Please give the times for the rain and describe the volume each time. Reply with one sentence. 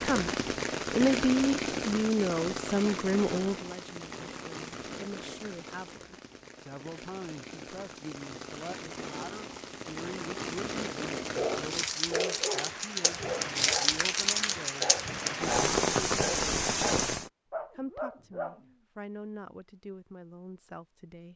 The rain can be heard from 0.0 to 17.3 s, getting quieter then louder.